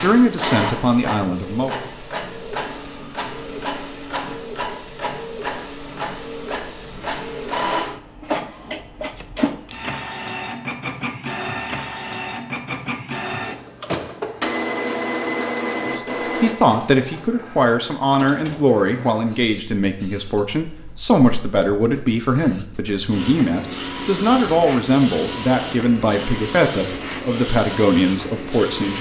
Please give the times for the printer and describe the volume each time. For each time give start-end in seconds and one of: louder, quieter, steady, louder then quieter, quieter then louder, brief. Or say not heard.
0.0-28.9 quieter then louder.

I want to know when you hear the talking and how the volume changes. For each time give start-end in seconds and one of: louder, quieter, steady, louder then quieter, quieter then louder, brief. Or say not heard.
0.0-1.7 brief
15.8-28.9 steady.